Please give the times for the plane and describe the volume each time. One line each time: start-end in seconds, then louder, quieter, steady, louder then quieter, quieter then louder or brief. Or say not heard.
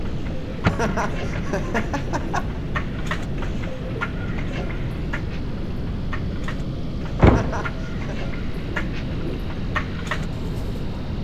0.0-11.1 steady.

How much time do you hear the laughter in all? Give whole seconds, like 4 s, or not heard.
3 s.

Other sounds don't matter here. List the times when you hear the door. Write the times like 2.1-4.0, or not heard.
0.7-1.4, 7.2-7.6.